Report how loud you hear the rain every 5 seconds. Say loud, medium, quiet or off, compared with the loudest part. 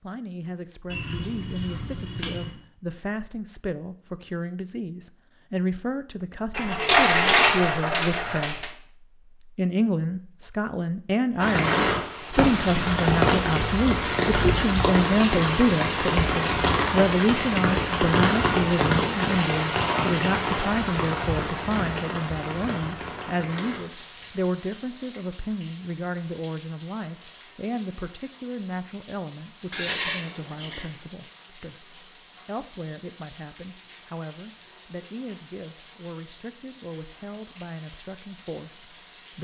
off, off, loud, loud, medium, quiet, quiet, quiet.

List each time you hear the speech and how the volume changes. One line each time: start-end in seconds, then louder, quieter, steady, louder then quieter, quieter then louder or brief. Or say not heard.
0.0-39.3 louder then quieter.